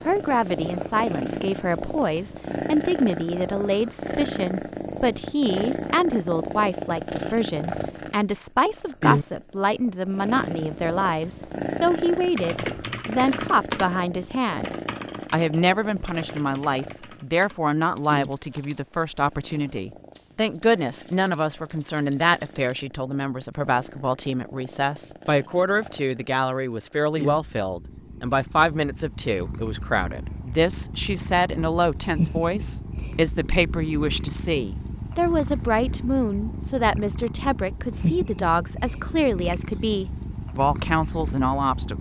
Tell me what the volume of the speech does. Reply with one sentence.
The volume of the speech stays about the same.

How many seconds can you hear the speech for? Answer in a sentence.
You can hear the speech for 41 seconds altogether.